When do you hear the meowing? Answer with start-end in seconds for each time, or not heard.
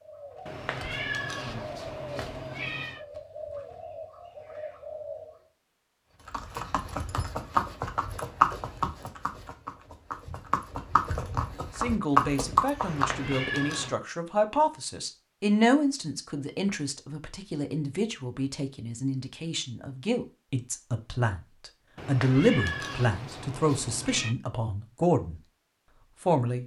0.5-3.0, 12.8-13.9, 21.9-24.4.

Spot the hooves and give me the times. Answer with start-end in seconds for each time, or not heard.
6.2-13.4.